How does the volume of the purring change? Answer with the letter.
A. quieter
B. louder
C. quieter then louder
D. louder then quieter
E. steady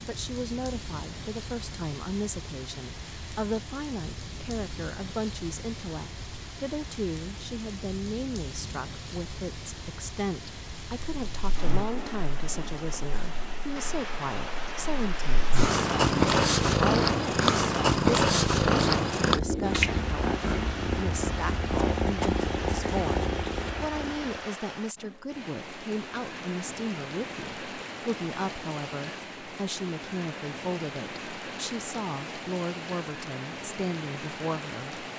D.